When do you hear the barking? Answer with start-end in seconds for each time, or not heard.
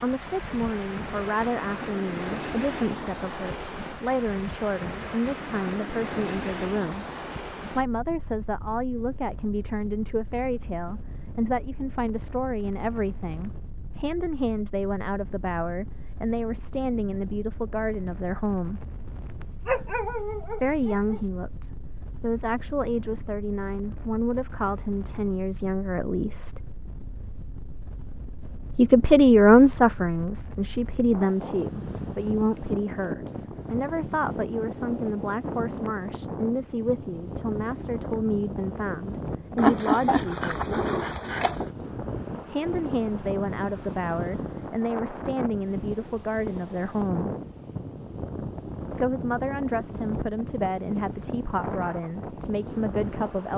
19.4-21.2, 39.5-41.7.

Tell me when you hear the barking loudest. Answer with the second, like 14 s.
40 s.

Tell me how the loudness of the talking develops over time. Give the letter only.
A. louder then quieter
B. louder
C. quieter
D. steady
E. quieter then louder
A.